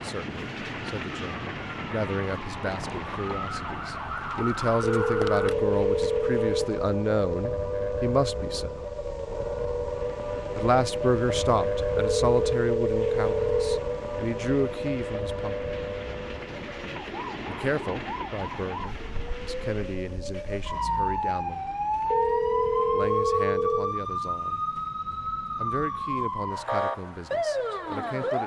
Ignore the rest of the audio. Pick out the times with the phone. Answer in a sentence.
You can hear the phone from 4.8 to 6.7 s, from 11.9 to 13.8 s and from 22.1 to 23.9 s.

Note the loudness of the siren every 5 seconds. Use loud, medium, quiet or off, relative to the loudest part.
medium, loud, loud, medium, loud, loud.